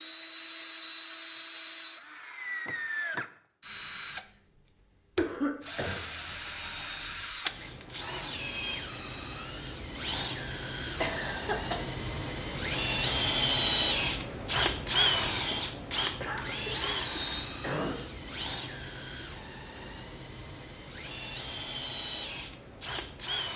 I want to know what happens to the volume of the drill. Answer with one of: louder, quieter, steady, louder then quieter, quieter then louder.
louder then quieter.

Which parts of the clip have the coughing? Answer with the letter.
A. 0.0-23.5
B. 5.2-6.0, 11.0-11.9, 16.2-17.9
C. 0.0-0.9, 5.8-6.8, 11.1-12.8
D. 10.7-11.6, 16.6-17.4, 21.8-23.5
B.